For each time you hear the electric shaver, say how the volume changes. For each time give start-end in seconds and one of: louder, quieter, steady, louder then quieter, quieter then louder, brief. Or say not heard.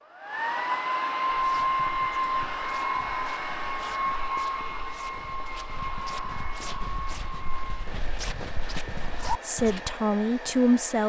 not heard.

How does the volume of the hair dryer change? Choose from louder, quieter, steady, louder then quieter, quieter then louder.
quieter.